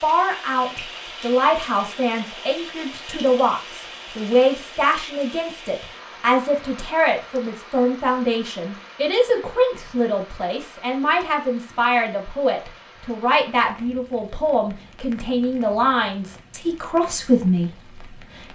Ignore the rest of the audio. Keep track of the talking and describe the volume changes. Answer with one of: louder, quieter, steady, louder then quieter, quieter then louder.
steady.